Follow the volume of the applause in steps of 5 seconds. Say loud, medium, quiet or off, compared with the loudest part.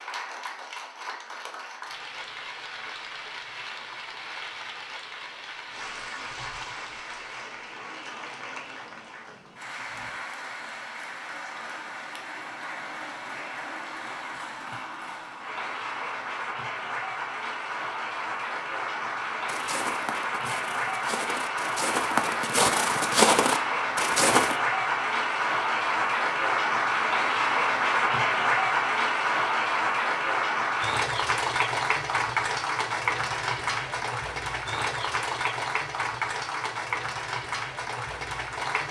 quiet, quiet, quiet, medium, loud, loud, loud, medium.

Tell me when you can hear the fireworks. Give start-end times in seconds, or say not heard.
not heard.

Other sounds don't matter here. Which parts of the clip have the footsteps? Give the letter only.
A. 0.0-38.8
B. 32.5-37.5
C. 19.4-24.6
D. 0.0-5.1
C.